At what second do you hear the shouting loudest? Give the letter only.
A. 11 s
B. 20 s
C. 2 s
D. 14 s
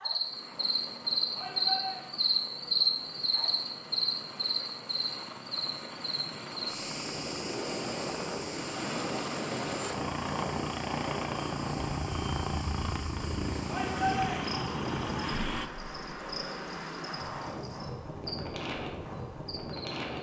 D.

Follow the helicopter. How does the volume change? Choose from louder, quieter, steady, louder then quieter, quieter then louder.
louder.